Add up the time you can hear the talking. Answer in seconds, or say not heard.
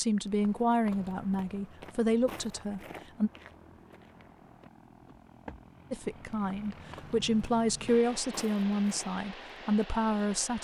8 s.